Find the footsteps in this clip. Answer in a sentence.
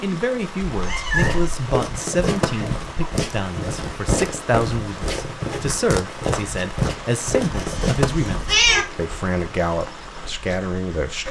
You can hear the footsteps from 1.1 to 8.6 s.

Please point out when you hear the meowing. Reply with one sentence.
You can hear the meowing from 0.7 to 1.5 s and from 7.5 to 8.8 s.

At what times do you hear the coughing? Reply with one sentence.
The coughing can be heard from 2.2 to 3.1 s.